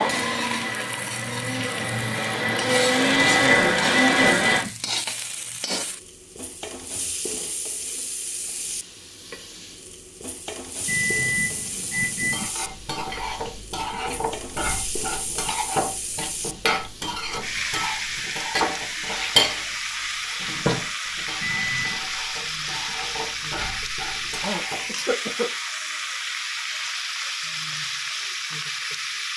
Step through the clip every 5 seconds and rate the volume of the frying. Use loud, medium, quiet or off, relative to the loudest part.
loud, medium, medium, loud, loud, loud.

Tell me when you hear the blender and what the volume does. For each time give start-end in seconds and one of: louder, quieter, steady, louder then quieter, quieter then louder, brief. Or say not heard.
0.0-4.7 louder.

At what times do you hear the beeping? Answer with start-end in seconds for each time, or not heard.
3.1-4.7, 10.8-12.4, 21.4-22.0.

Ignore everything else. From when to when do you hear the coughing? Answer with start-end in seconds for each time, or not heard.
24.4-25.5.